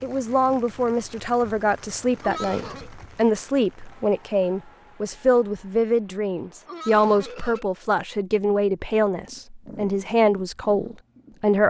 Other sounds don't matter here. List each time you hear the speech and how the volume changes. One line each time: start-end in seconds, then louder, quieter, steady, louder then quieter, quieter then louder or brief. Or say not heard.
0.0-11.6 steady.